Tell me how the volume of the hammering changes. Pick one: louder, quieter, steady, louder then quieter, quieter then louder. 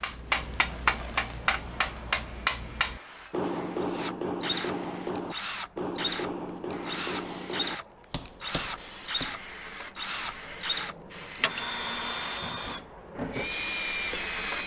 quieter.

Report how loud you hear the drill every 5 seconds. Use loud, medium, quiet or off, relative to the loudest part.
medium, loud, loud.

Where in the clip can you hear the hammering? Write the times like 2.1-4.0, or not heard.
0.0-9.4.